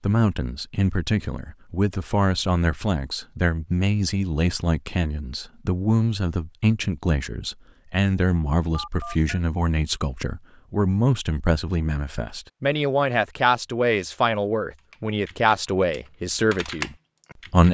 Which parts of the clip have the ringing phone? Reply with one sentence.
The ringing phone can be heard from 8.7 to 9.4 s.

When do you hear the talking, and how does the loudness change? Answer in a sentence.
The talking can be heard from 0.0 to 17.6 s, at a steady volume.